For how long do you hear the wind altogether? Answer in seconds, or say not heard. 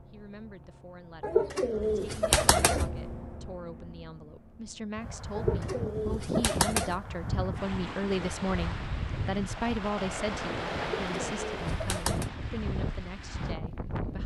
9 s.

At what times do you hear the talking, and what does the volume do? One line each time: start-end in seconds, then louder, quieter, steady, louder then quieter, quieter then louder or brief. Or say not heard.
0.0-14.2 louder then quieter.